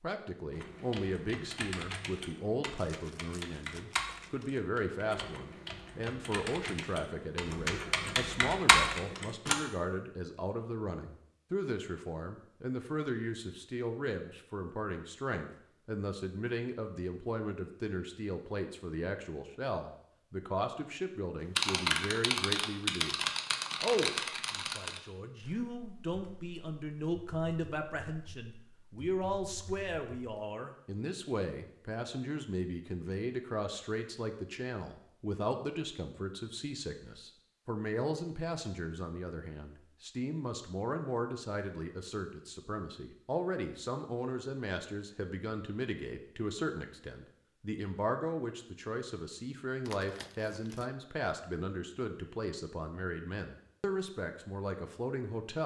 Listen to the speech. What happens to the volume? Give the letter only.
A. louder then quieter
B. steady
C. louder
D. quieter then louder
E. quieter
B.